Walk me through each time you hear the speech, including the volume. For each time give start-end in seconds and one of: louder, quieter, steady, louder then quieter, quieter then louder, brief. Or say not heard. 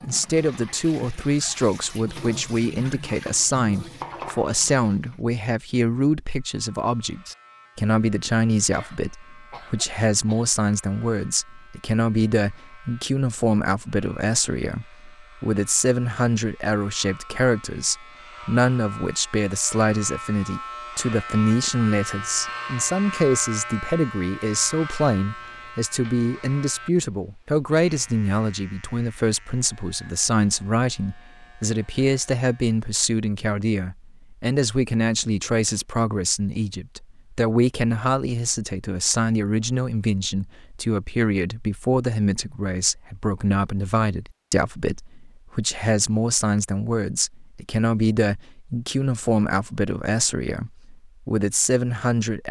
0.0-52.4 steady.